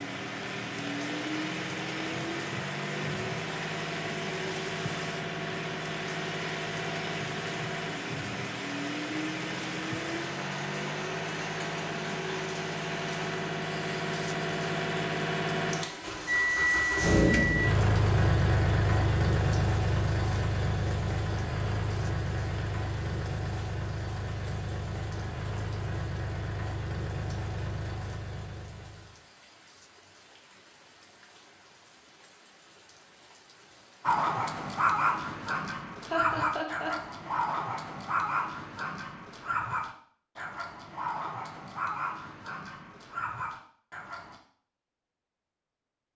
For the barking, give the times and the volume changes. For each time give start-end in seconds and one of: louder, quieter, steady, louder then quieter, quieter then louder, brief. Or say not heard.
34.0-44.4 quieter.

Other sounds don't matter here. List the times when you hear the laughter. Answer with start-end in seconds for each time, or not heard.
36.0-37.0.